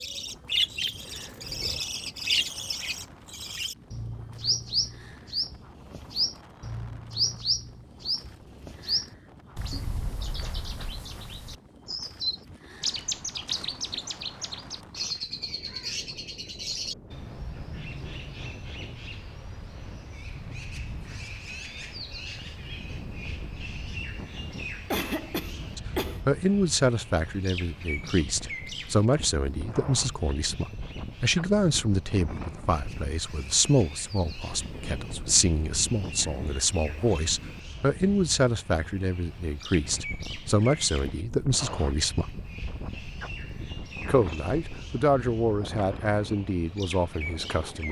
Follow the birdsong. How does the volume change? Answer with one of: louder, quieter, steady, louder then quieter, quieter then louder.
quieter.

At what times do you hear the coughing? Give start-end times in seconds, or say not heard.
24.9-26.2.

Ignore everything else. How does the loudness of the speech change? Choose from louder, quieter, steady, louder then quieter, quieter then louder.
steady.